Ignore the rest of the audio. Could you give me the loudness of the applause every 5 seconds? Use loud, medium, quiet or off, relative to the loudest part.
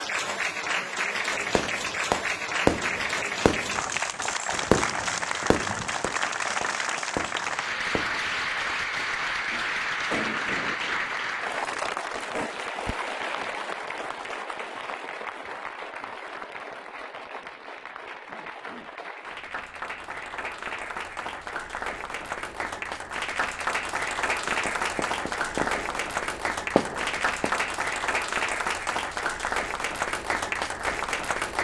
loud, loud, loud, medium, loud, loud, loud.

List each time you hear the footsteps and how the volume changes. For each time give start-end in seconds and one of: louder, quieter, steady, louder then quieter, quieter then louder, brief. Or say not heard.
not heard.